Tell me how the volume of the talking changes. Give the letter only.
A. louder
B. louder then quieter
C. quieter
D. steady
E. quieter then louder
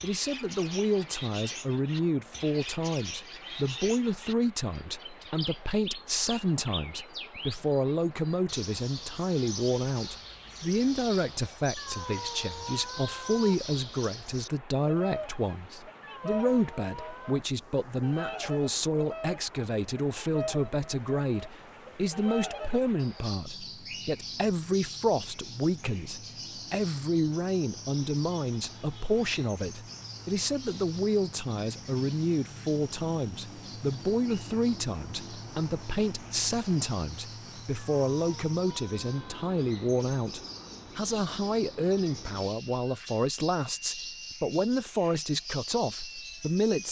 D.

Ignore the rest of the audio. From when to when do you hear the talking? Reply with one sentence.
You can hear the talking from 0.0 to 46.8 s.